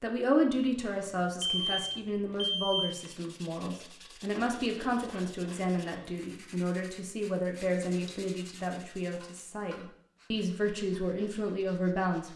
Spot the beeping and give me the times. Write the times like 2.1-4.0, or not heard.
1.0-2.9, 7.6-8.2.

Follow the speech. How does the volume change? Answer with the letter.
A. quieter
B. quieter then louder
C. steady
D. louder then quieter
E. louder
C.